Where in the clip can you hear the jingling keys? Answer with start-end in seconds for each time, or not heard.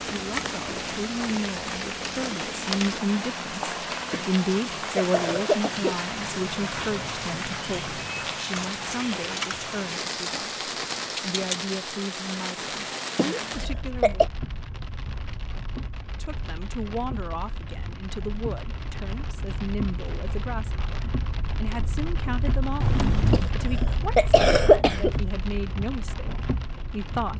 8.6-9.8, 22.8-23.4.